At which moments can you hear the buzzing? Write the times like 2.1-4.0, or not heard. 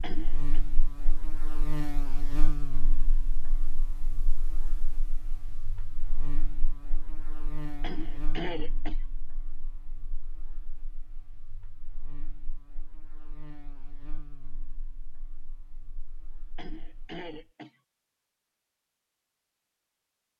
0.0-17.3.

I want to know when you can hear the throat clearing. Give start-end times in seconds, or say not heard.
0.0-0.6, 7.8-8.9, 16.6-17.7.